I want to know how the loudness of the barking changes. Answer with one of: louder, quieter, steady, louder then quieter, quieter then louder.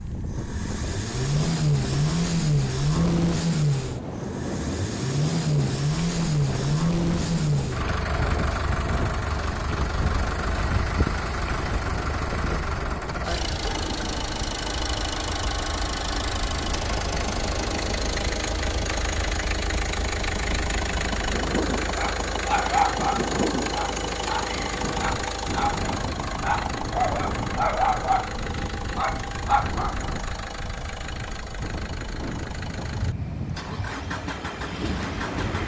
quieter then louder.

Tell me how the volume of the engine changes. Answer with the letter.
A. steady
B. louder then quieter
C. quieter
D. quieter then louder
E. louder
C.